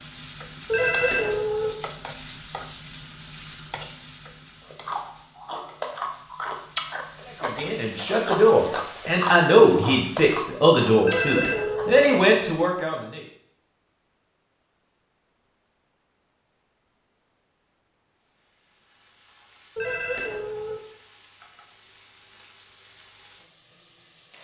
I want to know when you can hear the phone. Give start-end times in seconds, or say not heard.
0.7-1.8, 11.0-12.1, 19.8-20.8.